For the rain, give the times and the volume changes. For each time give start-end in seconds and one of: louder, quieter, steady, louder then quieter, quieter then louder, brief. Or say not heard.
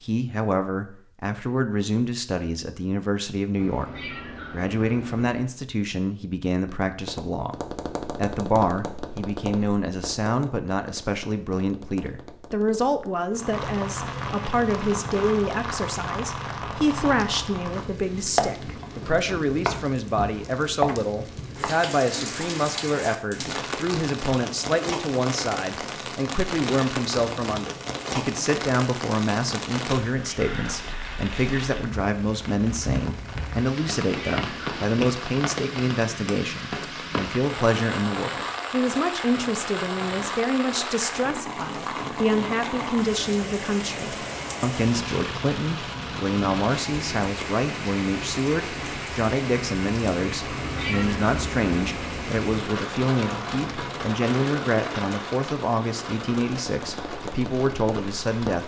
13.3-58.6 steady.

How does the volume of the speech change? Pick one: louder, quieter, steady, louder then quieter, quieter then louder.
steady.